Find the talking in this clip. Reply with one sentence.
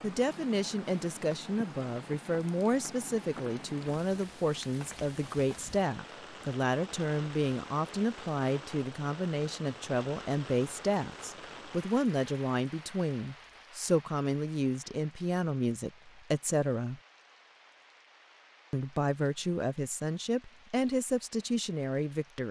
The talking can be heard from 0.0 to 17.0 s and from 18.7 to 22.4 s.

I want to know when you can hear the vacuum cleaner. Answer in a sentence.
You can't hear the vacuum cleaner here.